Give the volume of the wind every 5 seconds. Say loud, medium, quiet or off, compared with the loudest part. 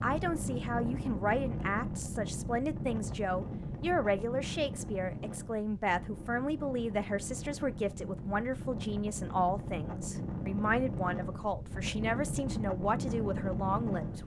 loud, medium, loud.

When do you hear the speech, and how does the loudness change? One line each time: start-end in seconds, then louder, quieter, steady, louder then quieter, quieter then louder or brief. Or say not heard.
0.0-14.2 steady.